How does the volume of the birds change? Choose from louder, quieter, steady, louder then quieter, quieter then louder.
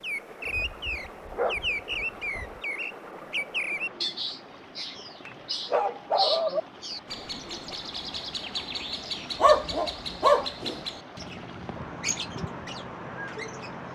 quieter.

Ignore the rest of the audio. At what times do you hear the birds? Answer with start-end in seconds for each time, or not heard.
0.0-13.9.